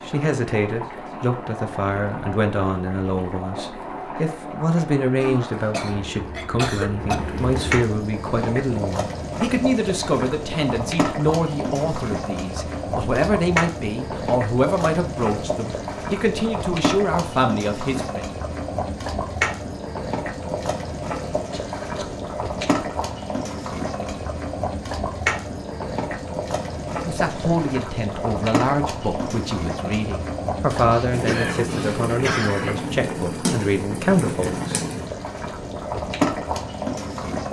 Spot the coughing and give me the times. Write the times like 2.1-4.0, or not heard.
5.2-7.2, 21.5-22.9, 30.9-32.9.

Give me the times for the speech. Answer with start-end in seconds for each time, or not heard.
0.1-18.2, 27.1-35.3.